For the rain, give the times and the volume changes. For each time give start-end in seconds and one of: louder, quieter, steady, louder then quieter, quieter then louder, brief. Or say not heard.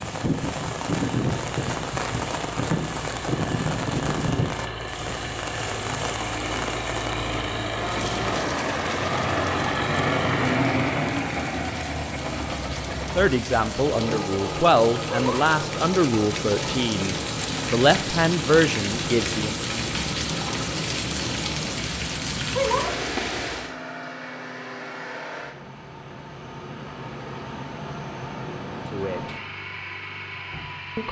0.0-23.8 quieter then louder.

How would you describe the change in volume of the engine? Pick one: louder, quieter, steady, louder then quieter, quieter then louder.
louder then quieter.